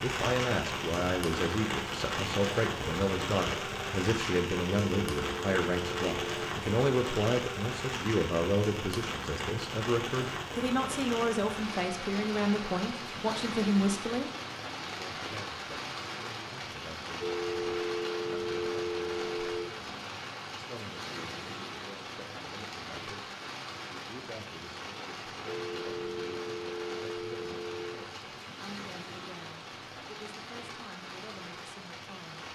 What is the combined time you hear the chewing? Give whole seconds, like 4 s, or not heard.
not heard.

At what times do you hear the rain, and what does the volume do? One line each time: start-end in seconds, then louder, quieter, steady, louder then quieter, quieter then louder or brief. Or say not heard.
0.0-32.4 quieter.